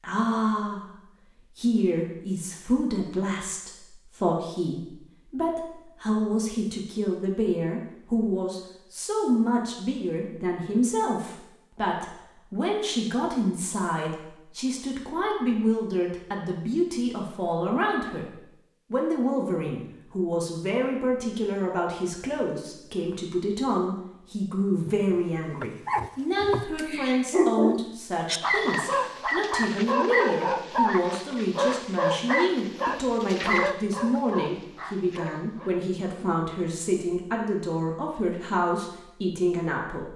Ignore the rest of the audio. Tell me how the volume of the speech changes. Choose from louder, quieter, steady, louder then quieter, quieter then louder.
steady.